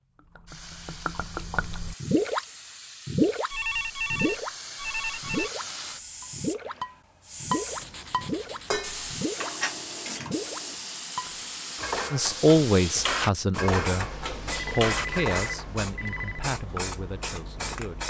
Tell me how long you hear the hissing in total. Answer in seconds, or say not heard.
18 s.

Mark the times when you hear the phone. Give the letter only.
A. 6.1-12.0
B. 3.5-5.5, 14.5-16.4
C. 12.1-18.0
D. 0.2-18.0
B.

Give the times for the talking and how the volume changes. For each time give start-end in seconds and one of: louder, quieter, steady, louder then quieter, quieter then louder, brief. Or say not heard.
12.1-18.0 quieter.